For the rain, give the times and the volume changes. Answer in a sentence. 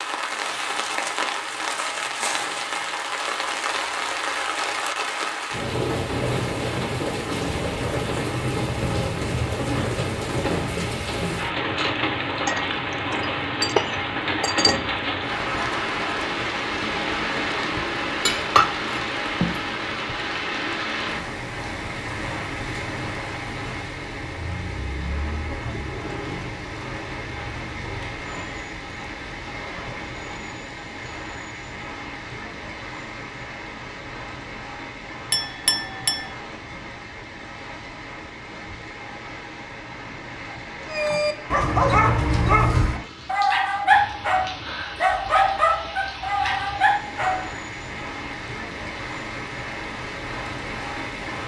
The rain can be heard from 0.0 to 51.4 s, getting quieter.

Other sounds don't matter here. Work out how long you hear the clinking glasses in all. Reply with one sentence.
The clinking glasses can be heard for 5 seconds in total.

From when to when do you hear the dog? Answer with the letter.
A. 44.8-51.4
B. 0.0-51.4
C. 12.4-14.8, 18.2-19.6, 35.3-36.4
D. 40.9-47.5
D.